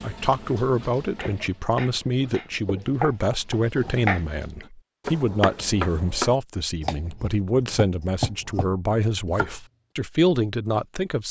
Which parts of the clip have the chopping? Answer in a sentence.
You can hear the chopping from 1.1 to 9.5 s.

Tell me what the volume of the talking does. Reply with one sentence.
The loudness of the talking stays about the same.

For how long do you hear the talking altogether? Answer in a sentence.
The talking can be heard for 11 seconds in total.